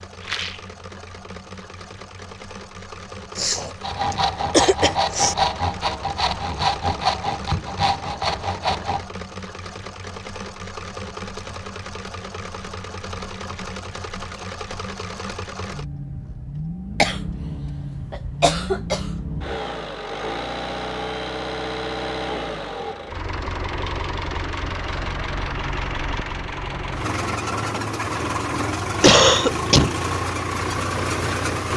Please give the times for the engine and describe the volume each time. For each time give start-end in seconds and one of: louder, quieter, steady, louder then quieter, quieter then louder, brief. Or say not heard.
0.0-31.7 louder.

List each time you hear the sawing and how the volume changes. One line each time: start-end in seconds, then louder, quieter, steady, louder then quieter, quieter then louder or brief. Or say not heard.
3.8-9.1 steady.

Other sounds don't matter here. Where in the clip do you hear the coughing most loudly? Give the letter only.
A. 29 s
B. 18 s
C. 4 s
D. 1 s
A.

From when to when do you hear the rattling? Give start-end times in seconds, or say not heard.
0.2-0.7.